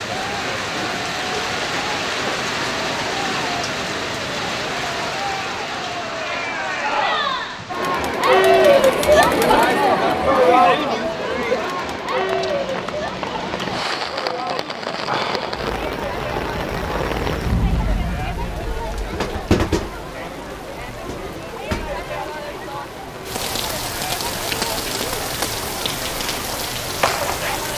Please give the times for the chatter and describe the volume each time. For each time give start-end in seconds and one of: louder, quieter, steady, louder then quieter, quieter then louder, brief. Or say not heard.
0.1-27.7 louder then quieter.